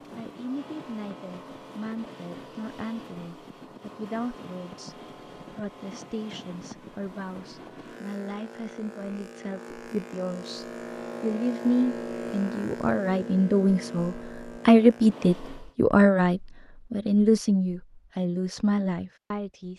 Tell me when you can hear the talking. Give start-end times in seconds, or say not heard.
0.1-19.7.